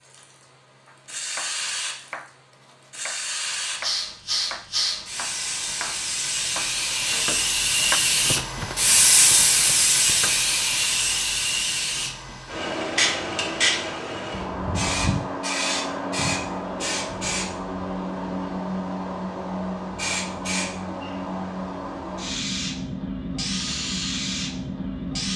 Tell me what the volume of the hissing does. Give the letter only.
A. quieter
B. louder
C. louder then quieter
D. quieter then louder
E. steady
C.